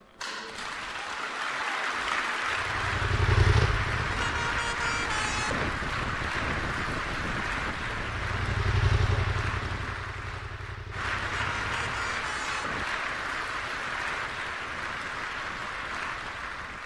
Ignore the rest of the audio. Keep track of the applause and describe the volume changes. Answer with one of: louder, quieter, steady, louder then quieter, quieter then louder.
steady.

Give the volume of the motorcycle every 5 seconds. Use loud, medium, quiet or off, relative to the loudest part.
loud, loud, quiet, off.